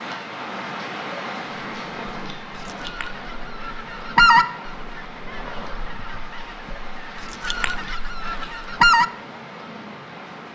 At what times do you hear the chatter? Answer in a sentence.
You can't hear the chatter here.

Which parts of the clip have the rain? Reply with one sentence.
You can hear the rain from 0.0 to 10.5 s.